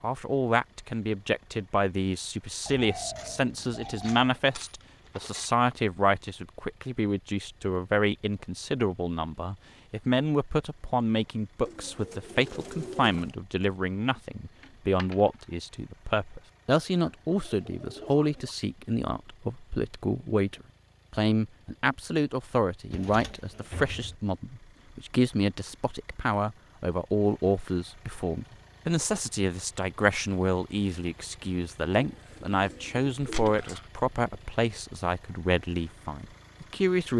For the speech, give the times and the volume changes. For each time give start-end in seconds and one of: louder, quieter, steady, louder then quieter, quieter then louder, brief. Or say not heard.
0.0-37.1 steady.